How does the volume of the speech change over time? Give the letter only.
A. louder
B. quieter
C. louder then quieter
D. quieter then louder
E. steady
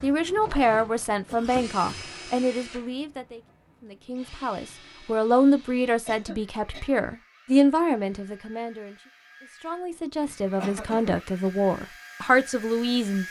D.